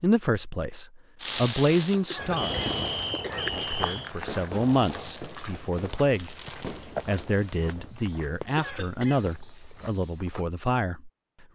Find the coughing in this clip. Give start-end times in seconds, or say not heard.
2.1-3.8, 8.6-9.3.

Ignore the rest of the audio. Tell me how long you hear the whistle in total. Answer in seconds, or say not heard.
2 s.